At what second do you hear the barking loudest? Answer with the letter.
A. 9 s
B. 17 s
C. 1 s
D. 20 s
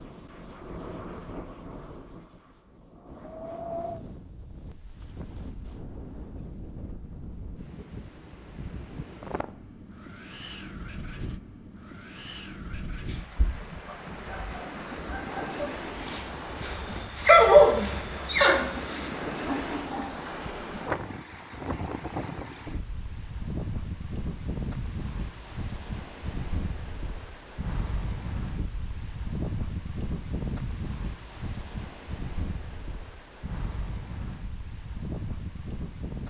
B.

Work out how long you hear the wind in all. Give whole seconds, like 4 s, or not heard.
36 s.